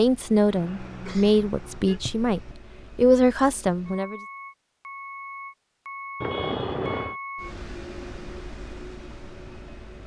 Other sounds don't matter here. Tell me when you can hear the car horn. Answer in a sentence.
You can hear the car horn from 0.5 to 2.0 s and from 6.2 to 7.2 s.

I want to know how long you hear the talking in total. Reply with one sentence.
The talking can be heard for 4 seconds in total.